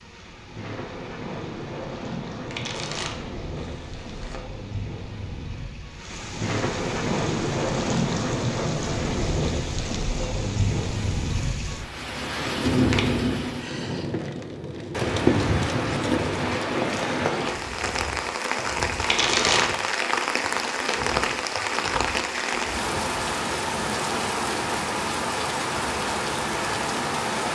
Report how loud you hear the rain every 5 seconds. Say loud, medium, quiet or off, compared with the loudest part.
medium, loud, loud, loud, loud, loud.